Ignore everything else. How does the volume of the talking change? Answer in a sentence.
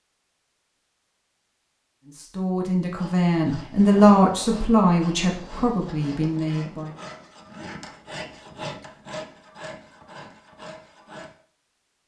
The loudness of the talking goes up, then down.